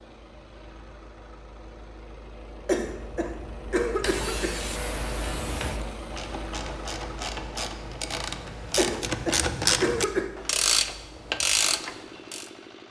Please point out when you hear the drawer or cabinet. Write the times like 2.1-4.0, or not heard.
not heard.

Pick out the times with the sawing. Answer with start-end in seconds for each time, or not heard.
4.0-5.8.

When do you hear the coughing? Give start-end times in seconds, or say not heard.
2.6-4.6, 8.8-10.2.